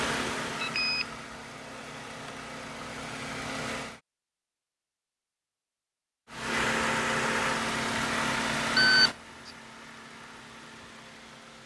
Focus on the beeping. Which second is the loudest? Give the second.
9 s.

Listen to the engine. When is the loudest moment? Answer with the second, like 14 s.
7 s.